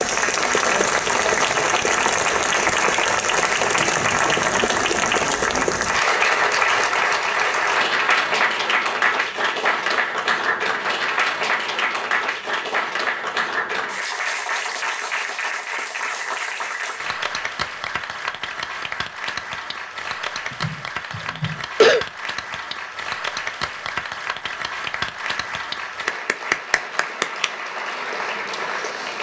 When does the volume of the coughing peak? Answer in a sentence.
The loudest moment of the coughing is at 22 seconds.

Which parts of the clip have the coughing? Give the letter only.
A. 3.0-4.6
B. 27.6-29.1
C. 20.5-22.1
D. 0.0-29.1
C.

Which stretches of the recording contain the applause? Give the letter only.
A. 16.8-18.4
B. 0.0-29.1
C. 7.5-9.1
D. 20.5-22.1
B.